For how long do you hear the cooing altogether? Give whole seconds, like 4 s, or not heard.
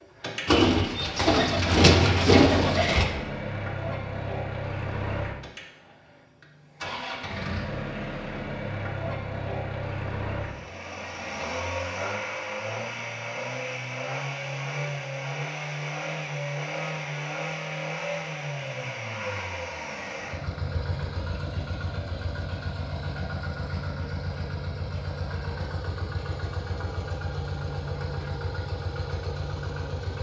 3 s.